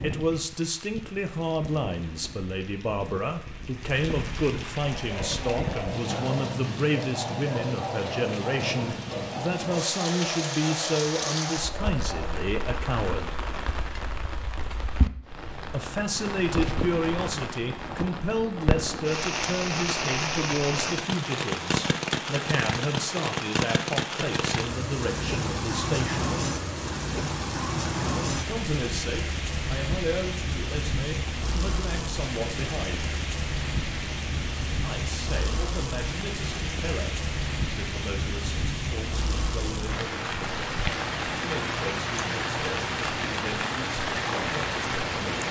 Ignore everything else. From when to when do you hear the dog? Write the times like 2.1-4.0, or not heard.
4.8-12.4.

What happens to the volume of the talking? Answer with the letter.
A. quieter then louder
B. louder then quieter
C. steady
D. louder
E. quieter
E.